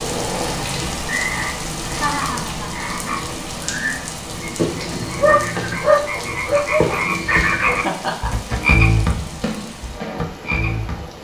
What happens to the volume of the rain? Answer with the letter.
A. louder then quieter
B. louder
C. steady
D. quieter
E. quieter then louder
D.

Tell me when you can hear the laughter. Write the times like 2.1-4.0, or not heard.
1.9-2.8, 7.7-8.3.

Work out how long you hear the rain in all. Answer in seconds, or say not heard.
11 s.